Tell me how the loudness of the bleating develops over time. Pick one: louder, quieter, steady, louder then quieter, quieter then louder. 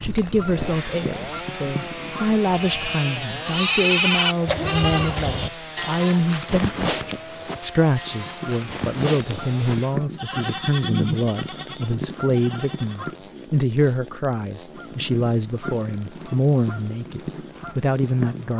quieter.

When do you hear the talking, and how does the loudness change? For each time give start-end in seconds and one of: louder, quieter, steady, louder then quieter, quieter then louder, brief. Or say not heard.
0.0-18.5 steady.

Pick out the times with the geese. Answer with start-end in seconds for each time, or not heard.
0.0-2.4, 8.1-13.3, 14.8-18.5.